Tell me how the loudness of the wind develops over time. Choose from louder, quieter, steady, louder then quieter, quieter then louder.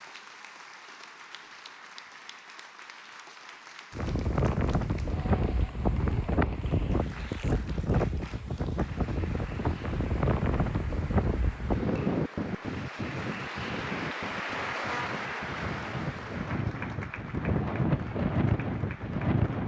quieter then louder.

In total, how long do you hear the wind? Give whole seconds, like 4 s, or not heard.
16 s.